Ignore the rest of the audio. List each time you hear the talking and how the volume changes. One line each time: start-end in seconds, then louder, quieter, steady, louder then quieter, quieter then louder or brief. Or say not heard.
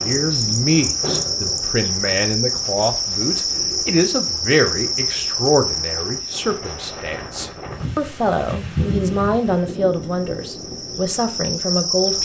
0.0-12.2 steady.